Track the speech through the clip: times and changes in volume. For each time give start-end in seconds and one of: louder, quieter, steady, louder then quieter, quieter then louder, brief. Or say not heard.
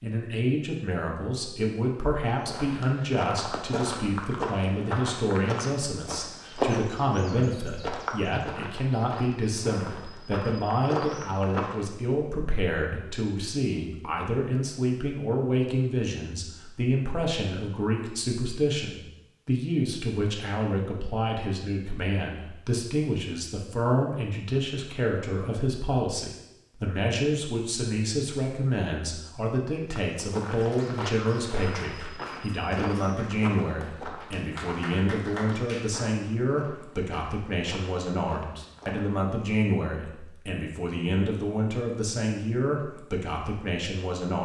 0.0-44.4 steady.